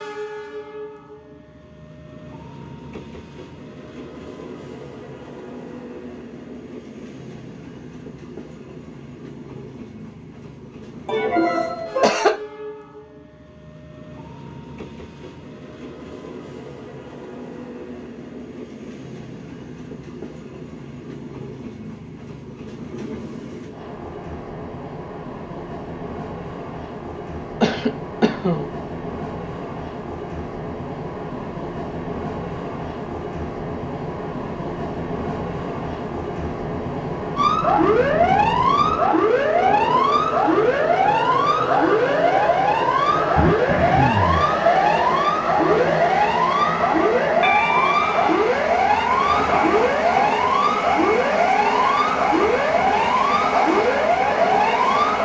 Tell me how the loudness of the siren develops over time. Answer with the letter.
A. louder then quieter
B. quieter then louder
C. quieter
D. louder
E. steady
E.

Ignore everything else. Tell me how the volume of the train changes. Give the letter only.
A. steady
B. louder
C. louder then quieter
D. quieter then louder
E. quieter
B.